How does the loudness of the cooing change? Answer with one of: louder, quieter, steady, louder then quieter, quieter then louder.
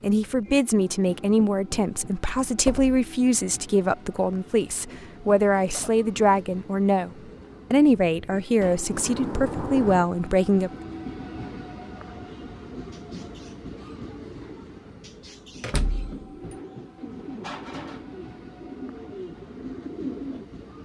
louder.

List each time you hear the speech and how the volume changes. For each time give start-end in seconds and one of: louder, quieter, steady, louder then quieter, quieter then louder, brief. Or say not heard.
0.0-7.1 steady
7.7-10.7 brief.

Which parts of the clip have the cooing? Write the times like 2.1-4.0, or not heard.
12.9-20.4.